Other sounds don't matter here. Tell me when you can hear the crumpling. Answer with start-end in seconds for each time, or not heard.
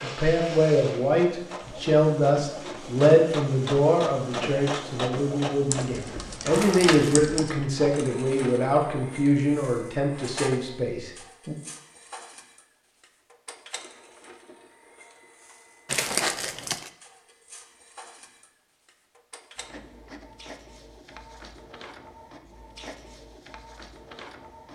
6.5-7.2, 15.8-16.9.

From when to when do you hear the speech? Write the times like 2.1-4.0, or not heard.
0.0-11.6.